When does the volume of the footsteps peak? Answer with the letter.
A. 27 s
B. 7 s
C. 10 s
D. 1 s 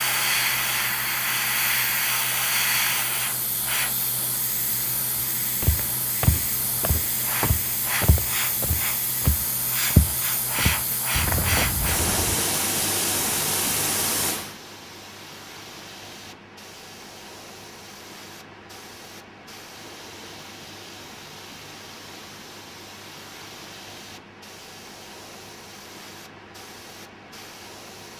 C.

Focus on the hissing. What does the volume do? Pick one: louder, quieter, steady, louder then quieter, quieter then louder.
quieter.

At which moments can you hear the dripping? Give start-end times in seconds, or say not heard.
not heard.